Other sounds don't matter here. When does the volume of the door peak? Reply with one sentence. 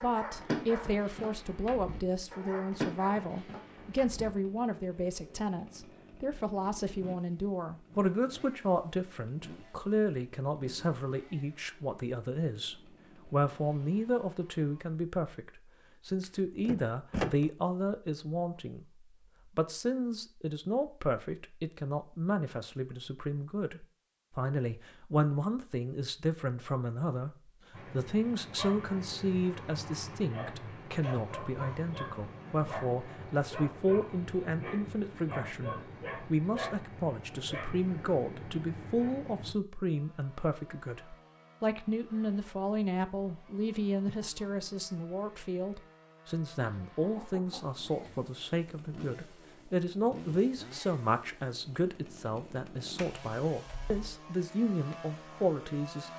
The volume of the door peaks at 17 seconds.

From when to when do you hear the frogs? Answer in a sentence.
The frogs can't be heard in this clip.